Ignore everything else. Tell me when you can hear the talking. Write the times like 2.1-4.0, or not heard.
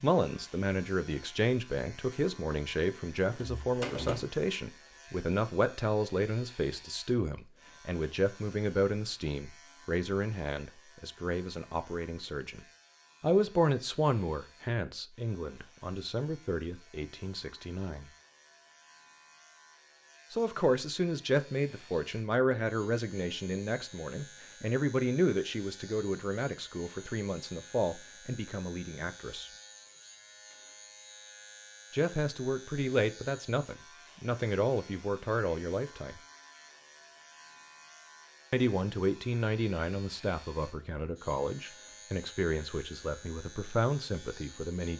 0.0-18.1, 20.3-29.5, 31.9-36.2, 38.5-44.9.